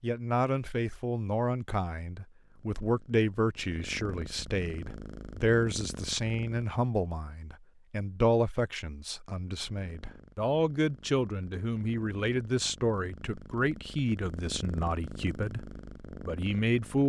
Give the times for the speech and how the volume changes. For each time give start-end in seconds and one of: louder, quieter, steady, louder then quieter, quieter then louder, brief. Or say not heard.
0.0-17.0 steady.